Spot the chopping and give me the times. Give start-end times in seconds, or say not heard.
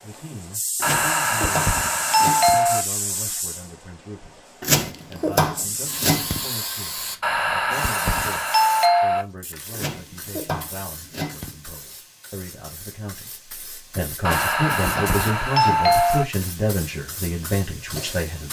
0.8-2.6, 4.6-6.4, 9.7-11.6, 14.2-16.0.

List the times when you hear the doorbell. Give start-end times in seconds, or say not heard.
0.8-2.9, 7.2-9.2, 14.2-16.2.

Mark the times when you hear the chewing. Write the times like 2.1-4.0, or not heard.
not heard.